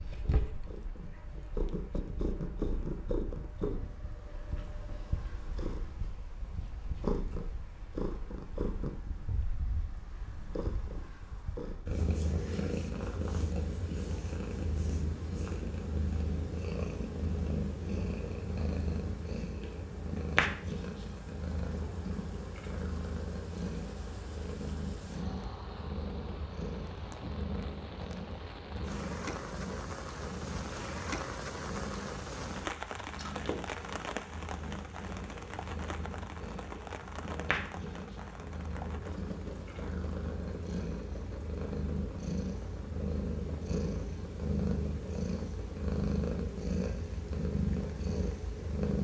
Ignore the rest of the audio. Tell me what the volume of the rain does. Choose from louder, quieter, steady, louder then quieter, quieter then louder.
louder then quieter.